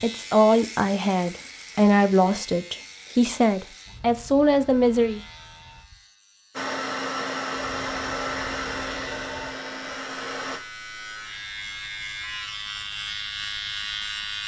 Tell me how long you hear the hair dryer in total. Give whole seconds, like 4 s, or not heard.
4 s.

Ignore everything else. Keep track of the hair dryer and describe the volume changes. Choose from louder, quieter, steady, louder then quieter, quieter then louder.
quieter.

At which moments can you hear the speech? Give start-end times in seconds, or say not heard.
0.0-5.2.